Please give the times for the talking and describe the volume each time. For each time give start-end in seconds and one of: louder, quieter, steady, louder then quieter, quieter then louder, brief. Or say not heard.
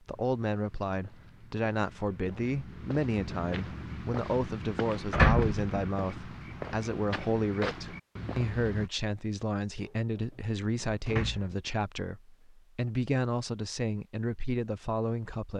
0.1-15.5 steady.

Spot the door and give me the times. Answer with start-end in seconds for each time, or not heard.
5.1-5.8, 9.8-11.6.